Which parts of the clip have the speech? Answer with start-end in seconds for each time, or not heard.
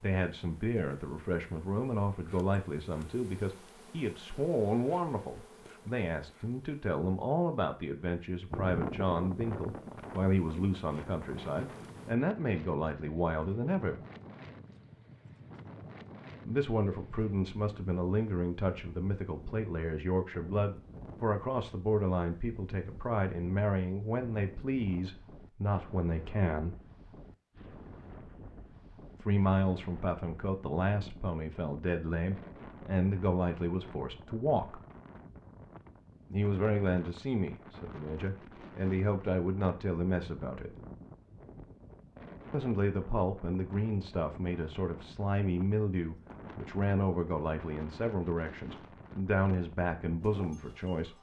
0.0-14.0, 16.4-26.8, 29.1-34.8, 36.3-40.7, 42.5-51.1.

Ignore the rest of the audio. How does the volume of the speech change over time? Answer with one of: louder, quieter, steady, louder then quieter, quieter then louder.
steady.